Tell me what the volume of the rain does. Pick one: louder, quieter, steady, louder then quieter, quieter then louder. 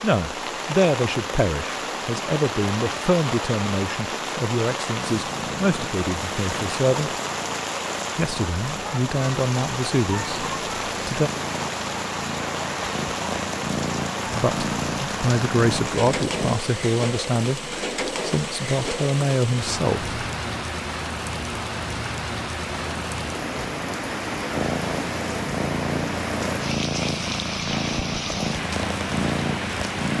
steady.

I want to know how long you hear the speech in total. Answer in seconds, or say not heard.
16 s.